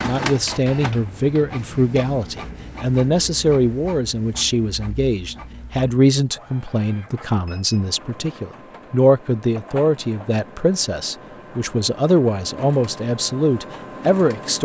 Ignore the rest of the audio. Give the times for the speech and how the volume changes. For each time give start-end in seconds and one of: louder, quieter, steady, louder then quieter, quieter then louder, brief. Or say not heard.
0.0-14.6 steady.